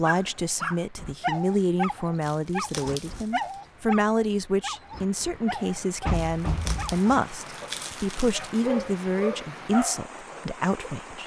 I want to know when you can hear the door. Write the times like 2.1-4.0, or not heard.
6.0-7.0.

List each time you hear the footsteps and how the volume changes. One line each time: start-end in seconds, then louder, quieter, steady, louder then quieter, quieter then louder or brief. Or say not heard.
not heard.